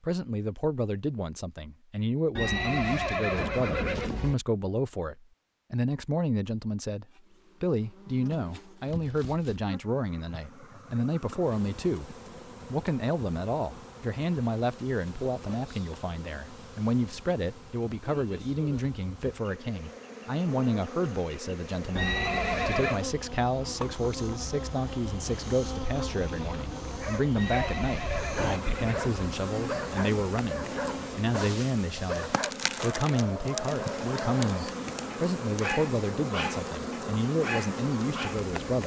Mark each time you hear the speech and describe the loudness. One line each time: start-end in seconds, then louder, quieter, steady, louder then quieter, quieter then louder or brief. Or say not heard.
0.0-38.8 steady.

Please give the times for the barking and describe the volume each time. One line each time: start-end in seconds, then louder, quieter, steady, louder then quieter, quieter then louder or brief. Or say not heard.
26.9-38.4 steady.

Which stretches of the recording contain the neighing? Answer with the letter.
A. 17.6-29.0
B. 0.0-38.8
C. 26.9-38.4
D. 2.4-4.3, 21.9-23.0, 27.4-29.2
D.